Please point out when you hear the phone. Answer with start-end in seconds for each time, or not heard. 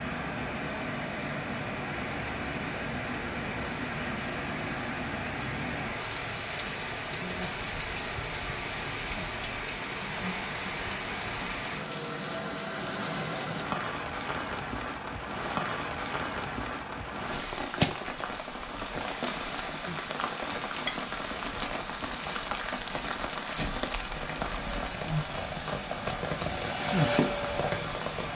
not heard.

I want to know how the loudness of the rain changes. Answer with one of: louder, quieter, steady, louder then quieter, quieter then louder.
steady.